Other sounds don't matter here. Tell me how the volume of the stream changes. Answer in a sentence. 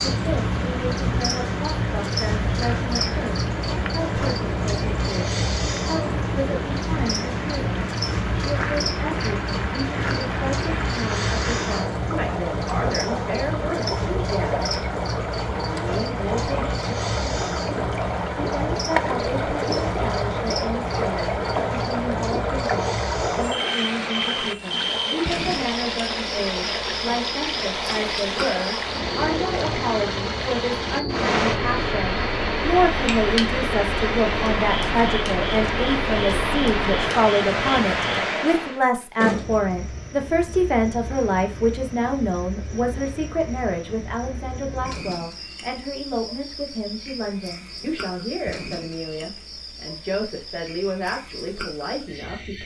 The volume of the stream goes up.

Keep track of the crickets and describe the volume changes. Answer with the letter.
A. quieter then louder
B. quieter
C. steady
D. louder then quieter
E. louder
B.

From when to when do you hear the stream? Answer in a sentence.
The stream can be heard from 0.0 to 38.8 s.